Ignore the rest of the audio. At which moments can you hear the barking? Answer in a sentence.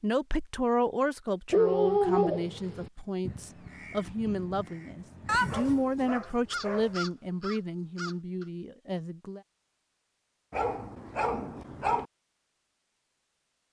You can hear the barking from 1.5 to 2.9 s, from 5.2 to 6.9 s and from 10.5 to 12.1 s.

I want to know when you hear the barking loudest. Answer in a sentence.
The loudest moment of the barking is at 2 seconds.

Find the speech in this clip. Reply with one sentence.
You can hear the speech from 0.0 to 9.4 s.